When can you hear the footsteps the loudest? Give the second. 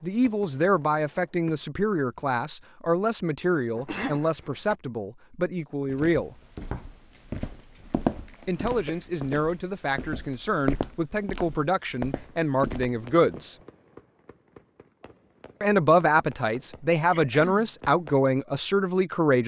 8 s.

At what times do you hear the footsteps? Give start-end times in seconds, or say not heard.
5.8-13.4.